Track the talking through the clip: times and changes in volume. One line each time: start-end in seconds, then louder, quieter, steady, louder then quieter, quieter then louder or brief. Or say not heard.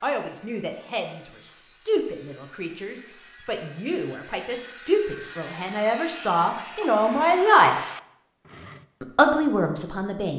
0.0-7.8 louder
9.0-10.3 brief.